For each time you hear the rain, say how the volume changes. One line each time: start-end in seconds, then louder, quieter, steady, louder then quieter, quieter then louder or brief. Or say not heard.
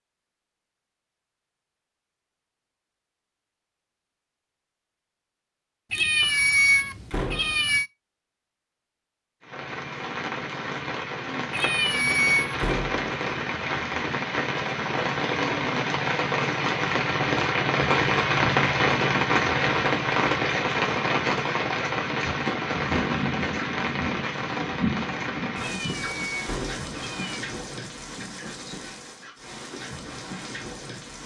9.4-31.2 louder then quieter.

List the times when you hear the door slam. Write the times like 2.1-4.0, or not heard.
7.1-7.7, 12.6-13.1, 26.4-26.9.